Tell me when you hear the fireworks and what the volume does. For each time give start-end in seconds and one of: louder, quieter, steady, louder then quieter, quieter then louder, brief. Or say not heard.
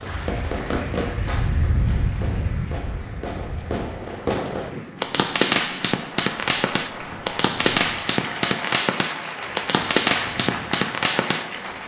0.0-11.8 louder.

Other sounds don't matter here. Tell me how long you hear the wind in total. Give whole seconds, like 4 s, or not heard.
12 s.